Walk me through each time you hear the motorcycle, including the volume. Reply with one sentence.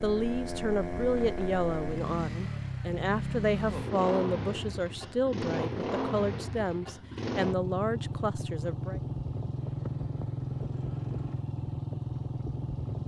The motorcycle can be heard from 0.0 to 13.0 s, at a steady volume.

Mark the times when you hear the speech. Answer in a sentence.
The speech can be heard from 0.0 to 9.0 s.